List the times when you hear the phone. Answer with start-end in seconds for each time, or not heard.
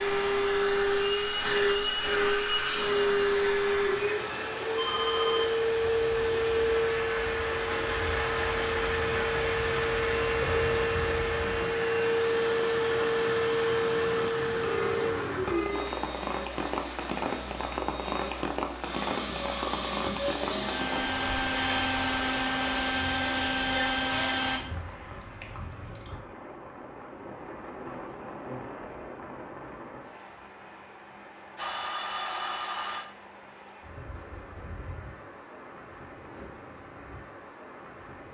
4.0-5.7, 14.6-15.9, 31.6-33.1.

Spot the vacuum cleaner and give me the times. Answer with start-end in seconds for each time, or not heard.
0.0-24.6.